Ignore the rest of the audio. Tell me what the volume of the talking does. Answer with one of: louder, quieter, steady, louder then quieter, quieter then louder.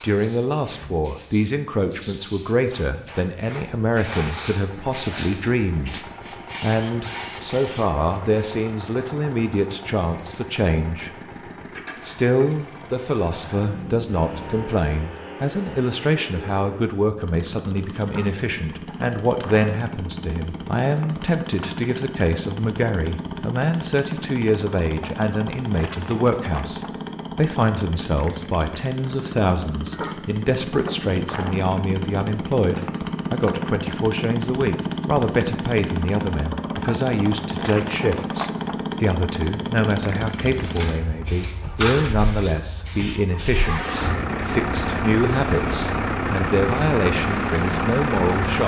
steady.